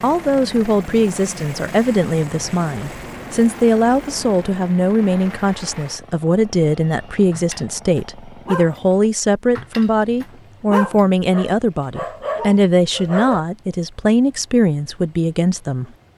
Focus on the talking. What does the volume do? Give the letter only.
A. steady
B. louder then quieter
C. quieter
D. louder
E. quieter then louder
A.